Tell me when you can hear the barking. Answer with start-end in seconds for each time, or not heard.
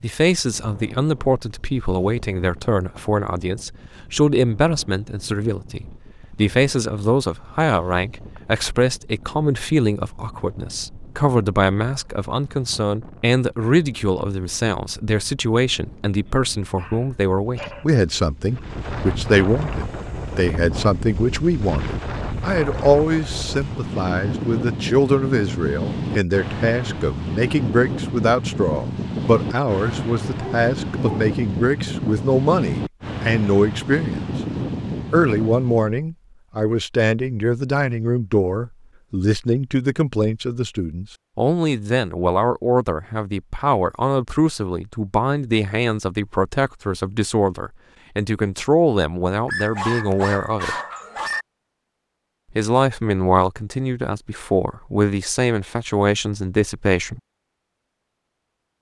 16.8-17.9, 30.2-31.4, 49.5-51.5.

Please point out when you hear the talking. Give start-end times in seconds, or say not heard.
0.0-34.2, 35.1-50.8, 52.5-57.2.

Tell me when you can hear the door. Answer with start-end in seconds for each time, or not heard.
not heard.